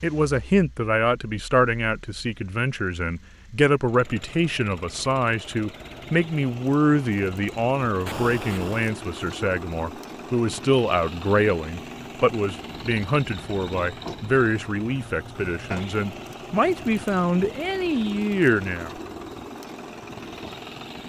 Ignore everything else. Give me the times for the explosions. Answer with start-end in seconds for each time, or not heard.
8.1-8.9.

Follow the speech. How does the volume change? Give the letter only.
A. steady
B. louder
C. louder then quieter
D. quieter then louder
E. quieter
A.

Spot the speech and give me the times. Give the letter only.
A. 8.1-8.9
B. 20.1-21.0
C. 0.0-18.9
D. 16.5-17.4
C.